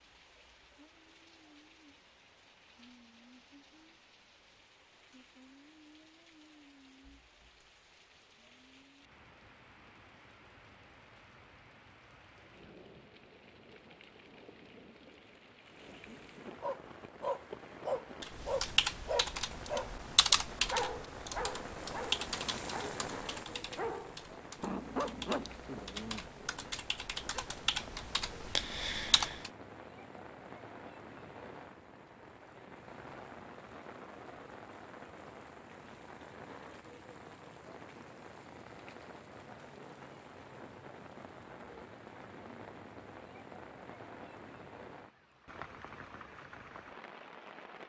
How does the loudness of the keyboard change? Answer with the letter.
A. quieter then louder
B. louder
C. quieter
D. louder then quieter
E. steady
A.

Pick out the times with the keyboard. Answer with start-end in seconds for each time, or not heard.
18.2-29.5.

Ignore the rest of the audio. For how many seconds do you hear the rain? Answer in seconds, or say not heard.
48 s.